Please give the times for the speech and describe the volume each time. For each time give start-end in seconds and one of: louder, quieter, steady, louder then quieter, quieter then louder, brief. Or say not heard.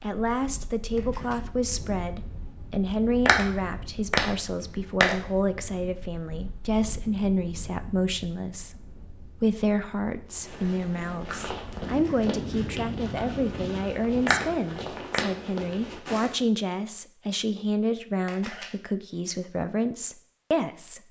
0.0-21.0 steady.